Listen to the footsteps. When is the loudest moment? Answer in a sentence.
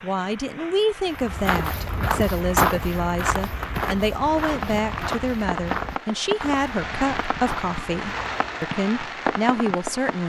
The volume of the footsteps peaks at 3 seconds.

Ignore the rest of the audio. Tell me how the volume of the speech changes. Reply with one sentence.
The volume of the speech stays about the same.